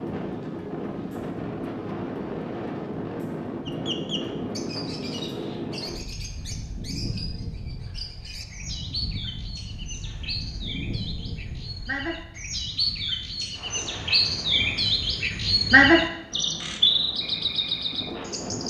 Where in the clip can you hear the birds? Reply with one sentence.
You can hear the birds from 3.6 to 18.6 s.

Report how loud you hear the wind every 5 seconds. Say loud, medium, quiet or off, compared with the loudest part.
loud, medium, medium, medium.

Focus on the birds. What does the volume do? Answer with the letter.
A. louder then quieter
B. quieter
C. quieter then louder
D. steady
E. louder
E.